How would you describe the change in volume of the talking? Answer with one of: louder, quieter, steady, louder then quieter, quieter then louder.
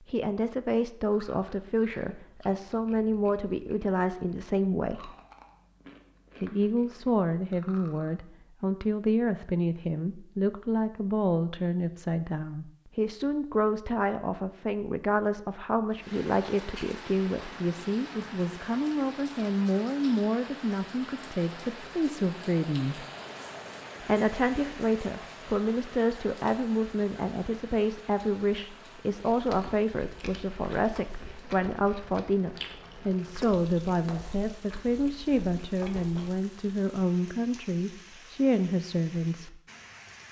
steady.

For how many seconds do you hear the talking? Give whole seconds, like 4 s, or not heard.
37 s.